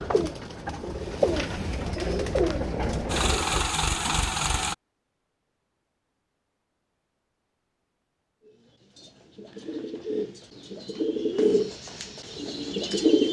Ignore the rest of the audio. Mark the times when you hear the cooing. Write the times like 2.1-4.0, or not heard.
0.0-3.6, 8.4-13.2.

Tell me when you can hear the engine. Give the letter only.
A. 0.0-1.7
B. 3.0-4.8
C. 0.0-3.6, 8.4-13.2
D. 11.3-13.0
B.